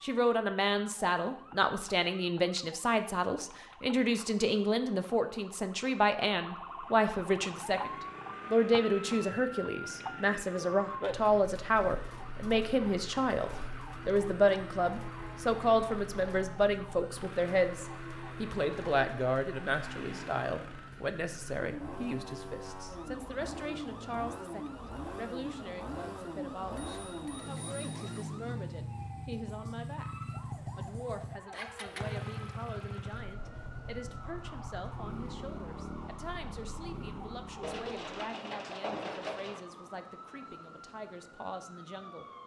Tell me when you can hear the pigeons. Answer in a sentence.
You can hear the pigeons from 37.6 to 39.6 s.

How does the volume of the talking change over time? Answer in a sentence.
The volume of the talking goes down.